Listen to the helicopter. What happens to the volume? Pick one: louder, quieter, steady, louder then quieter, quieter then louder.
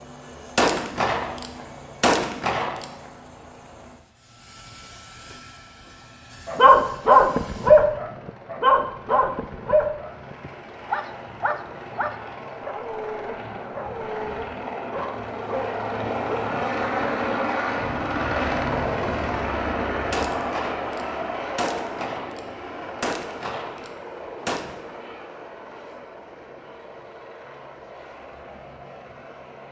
louder then quieter.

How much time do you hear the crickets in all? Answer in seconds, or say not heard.
not heard.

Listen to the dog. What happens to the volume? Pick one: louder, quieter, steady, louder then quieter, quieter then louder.
quieter.